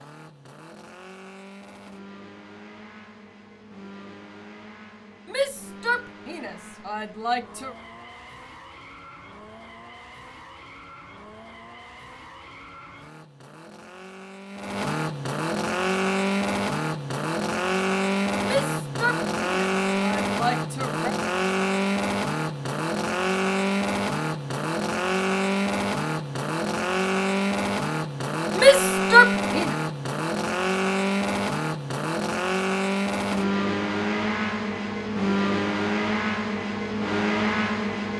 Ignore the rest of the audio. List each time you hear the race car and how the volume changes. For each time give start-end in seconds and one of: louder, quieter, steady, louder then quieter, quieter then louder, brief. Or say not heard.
0.0-38.1 louder.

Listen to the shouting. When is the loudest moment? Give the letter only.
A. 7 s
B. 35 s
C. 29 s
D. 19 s
C.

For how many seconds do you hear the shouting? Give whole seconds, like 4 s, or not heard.
6 s.